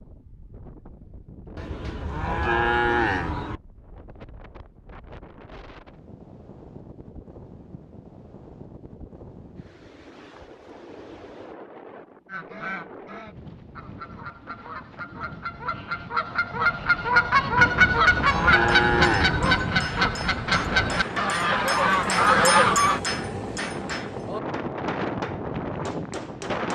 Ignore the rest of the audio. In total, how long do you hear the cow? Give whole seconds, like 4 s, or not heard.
4 s.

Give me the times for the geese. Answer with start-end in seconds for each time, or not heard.
12.2-23.0.